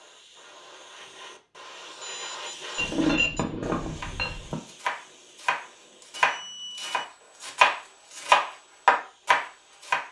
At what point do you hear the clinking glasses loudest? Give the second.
3 s.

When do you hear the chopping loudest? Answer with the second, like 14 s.
8 s.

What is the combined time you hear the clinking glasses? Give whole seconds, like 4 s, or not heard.
2 s.